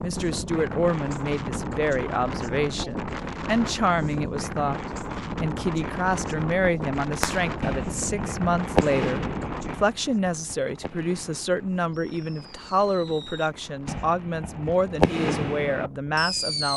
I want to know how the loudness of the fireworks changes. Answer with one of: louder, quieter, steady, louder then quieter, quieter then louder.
quieter then louder.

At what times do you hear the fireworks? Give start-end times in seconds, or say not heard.
7.2-16.7.